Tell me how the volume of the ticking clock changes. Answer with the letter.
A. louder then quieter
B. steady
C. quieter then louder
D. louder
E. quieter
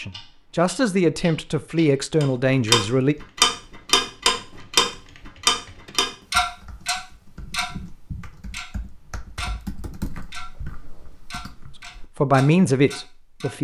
A.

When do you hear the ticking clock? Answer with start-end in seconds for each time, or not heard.
0.0-13.5.